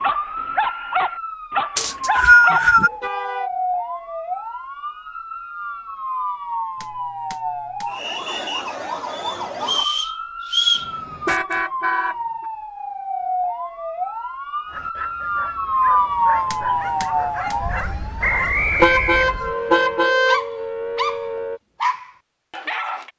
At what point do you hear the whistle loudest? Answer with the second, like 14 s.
2 s.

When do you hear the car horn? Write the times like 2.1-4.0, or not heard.
3.0-3.5, 10.8-12.4, 18.8-20.4.